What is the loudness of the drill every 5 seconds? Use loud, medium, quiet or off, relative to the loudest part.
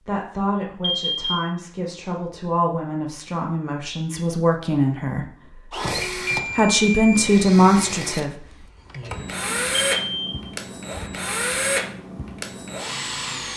off, loud, loud.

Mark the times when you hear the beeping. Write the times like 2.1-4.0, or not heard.
0.8-1.4, 6.0-7.3, 9.6-10.3.